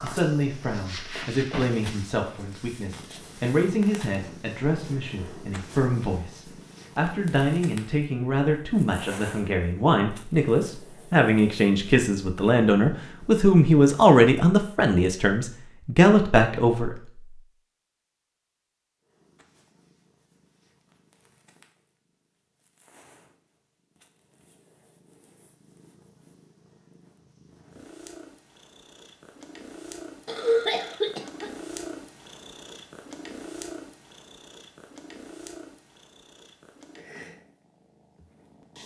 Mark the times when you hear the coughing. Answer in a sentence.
You can hear the coughing from 30.2 to 31.5 s.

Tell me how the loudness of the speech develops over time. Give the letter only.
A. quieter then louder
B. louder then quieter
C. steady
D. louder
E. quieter
D.